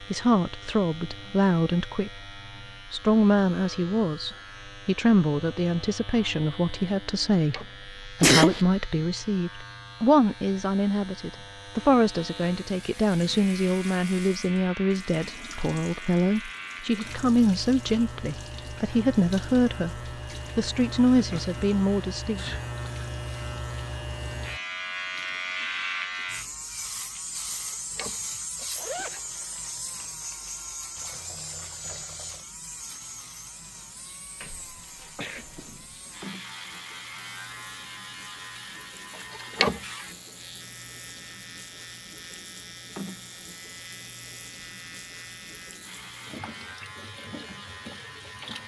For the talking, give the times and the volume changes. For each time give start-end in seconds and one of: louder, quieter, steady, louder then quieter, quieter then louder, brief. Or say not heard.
0.0-2.3 brief
2.9-22.4 steady.